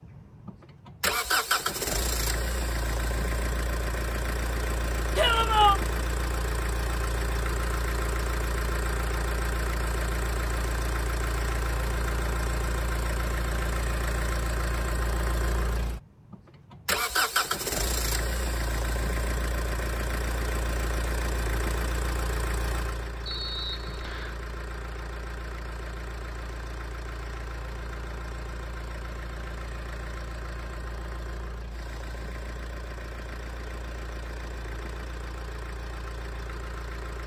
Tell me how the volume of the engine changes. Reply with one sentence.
The loudness of the engine goes down.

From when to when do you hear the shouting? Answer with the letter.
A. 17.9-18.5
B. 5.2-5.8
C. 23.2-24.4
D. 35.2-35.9
B.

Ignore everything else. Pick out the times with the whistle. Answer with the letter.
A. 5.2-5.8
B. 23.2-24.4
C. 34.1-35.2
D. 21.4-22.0
B.